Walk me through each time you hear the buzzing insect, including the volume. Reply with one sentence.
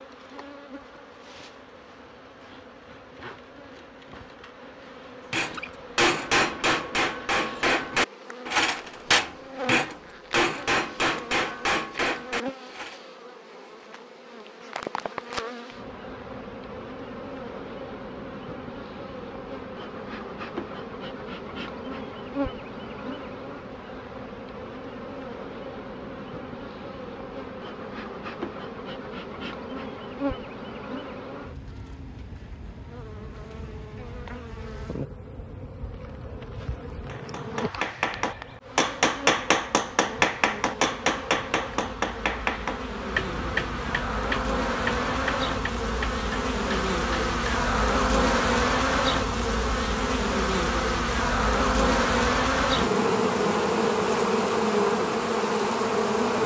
You can hear the buzzing insect from 0.0 to 56.4 s, getting louder.